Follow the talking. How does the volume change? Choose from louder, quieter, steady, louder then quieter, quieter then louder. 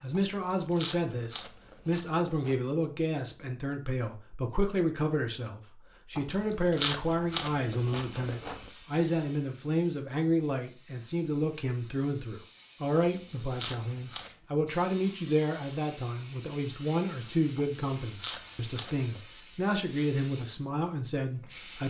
steady.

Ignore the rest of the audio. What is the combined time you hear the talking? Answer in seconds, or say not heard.
22 s.